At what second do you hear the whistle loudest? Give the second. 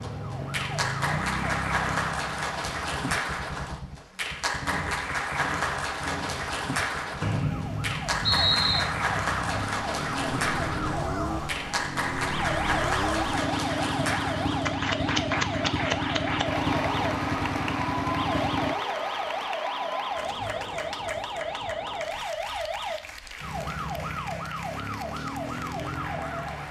8 s.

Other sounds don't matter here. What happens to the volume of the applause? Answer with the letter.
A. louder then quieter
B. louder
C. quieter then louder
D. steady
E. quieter
E.